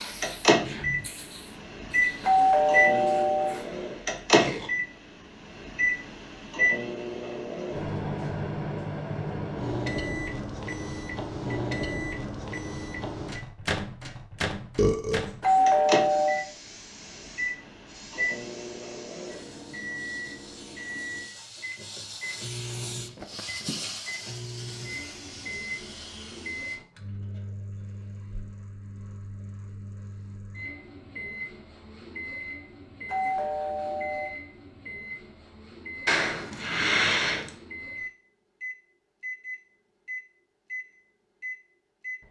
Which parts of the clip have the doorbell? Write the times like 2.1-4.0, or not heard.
2.2-3.6, 15.4-16.4, 33.0-34.3.